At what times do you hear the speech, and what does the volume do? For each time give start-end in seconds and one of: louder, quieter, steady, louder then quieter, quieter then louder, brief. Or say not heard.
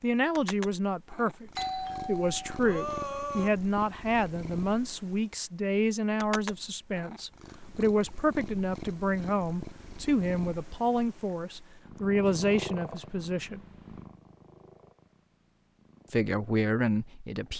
0.0-13.6 steady
16.1-17.5 brief.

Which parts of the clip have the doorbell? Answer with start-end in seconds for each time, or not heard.
1.6-3.5.